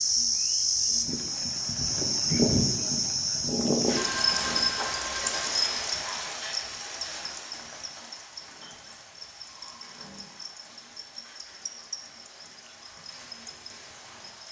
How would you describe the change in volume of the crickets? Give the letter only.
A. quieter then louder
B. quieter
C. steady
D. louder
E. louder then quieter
B.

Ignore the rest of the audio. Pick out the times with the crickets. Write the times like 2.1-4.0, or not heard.
0.0-14.4.